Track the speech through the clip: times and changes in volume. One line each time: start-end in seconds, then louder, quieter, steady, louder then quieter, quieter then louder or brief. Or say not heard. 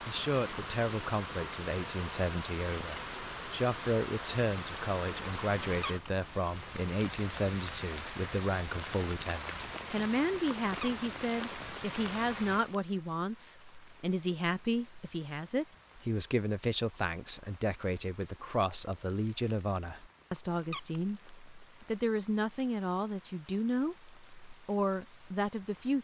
0.1-25.9 steady.